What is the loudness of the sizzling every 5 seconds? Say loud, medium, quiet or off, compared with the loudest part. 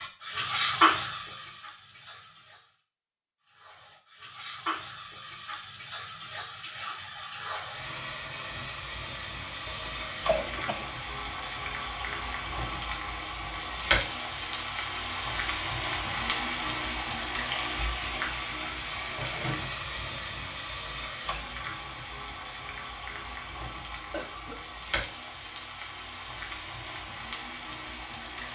loud, medium, loud, loud, medium, medium.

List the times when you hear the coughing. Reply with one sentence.
You can hear the coughing from 9.7 to 10.9 s and from 24.1 to 24.6 s.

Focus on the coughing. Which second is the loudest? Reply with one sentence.
The volume of the coughing peaks at 10 seconds.